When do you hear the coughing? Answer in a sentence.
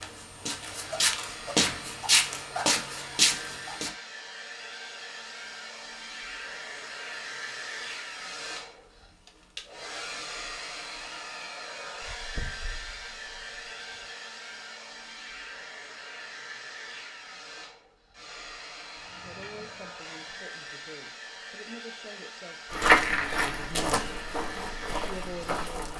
You can't hear the coughing here.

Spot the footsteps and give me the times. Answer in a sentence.
The footsteps can be heard from 0.0 to 3.9 s and from 22.7 to 25.9 s.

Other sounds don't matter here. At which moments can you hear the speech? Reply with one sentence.
You can hear the speech from 19.2 to 24.2 s and from 25.1 to 25.9 s.